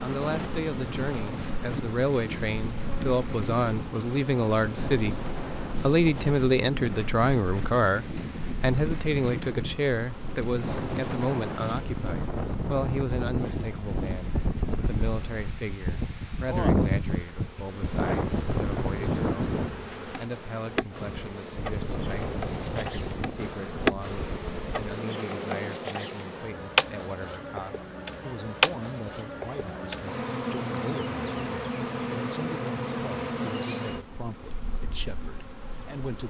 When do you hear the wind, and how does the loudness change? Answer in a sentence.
You can hear the wind from 0.2 to 24.8 s, getting louder then quieter.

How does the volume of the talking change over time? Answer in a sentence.
The loudness of the talking goes down.